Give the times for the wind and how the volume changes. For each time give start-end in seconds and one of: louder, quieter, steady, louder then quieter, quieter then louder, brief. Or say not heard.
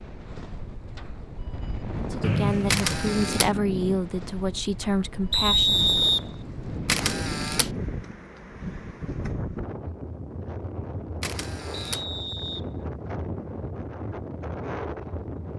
0.0-15.5 steady.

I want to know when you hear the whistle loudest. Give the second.
6 s.